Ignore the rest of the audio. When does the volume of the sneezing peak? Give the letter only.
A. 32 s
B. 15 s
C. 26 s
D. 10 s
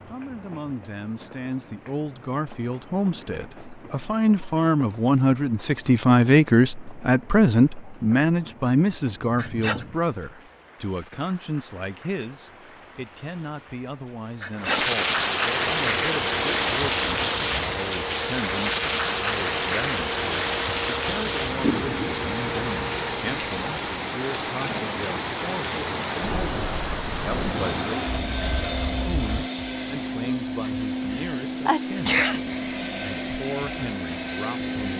A.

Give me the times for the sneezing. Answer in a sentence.
You can hear the sneezing from 9.3 to 9.8 s, from 14.4 to 14.8 s and from 31.1 to 32.4 s.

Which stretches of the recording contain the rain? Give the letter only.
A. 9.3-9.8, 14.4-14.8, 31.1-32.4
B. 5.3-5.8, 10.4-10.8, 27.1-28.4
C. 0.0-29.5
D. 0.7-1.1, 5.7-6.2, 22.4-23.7
C.